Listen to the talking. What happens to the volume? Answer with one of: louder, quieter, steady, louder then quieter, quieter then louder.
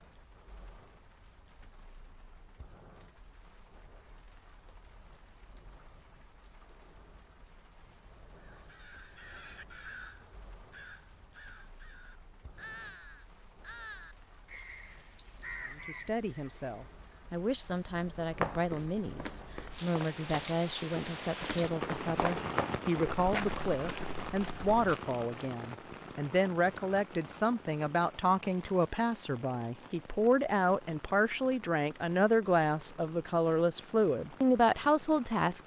louder.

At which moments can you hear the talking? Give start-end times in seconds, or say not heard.
15.7-35.6.